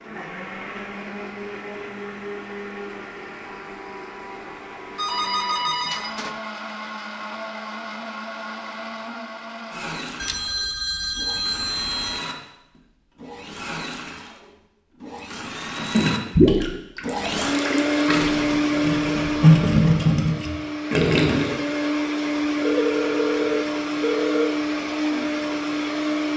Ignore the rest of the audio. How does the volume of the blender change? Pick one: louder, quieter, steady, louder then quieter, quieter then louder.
louder.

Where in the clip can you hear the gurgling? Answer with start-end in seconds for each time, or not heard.
15.8-21.6.